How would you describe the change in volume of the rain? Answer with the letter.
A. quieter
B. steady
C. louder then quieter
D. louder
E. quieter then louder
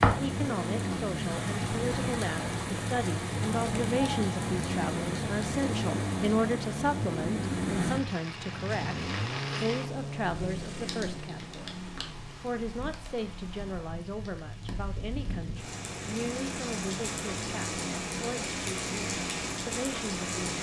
E.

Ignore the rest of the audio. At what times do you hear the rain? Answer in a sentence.
You can hear the rain from 0.0 to 20.5 s.